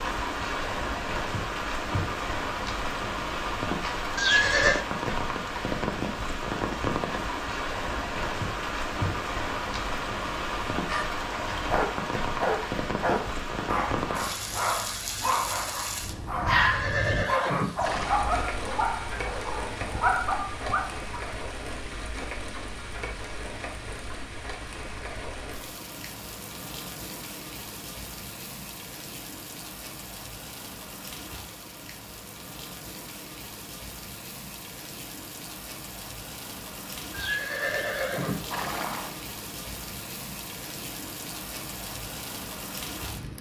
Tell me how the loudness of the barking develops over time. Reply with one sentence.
The loudness of the barking stays about the same.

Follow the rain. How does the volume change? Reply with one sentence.
The loudness of the rain goes down.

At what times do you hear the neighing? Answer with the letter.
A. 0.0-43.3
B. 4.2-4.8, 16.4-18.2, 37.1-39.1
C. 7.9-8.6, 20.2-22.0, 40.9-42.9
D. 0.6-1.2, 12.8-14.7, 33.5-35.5
B.